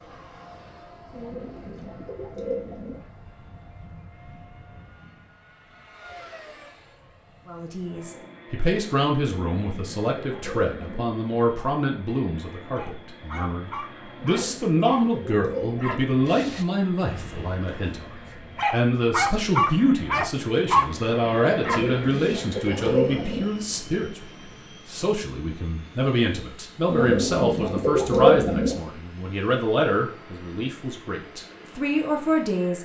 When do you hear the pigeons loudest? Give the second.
28 s.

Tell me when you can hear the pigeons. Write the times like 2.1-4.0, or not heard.
1.1-3.0, 9.2-11.1, 14.2-16.1, 21.6-23.4, 26.9-28.8.